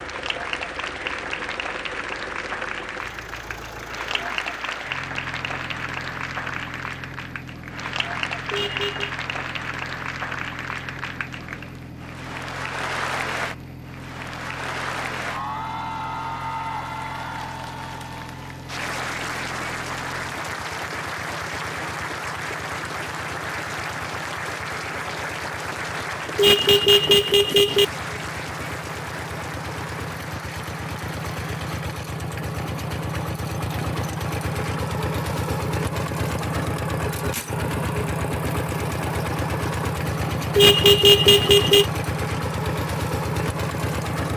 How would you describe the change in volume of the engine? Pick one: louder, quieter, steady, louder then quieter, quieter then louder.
louder.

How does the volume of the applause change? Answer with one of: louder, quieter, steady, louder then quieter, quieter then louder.
steady.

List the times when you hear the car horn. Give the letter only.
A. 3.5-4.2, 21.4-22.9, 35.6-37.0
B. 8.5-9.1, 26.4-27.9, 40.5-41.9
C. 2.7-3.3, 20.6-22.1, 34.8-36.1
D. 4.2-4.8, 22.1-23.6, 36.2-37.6
B.